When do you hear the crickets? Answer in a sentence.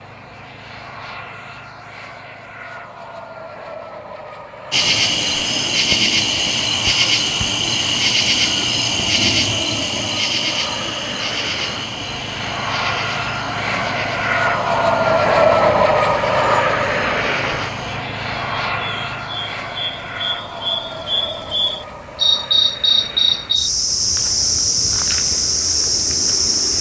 You can hear the crickets from 4.7 to 26.7 s.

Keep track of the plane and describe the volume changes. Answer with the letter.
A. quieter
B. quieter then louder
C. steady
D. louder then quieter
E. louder
D.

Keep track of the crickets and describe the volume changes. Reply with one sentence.
The volume of the crickets goes down, then up.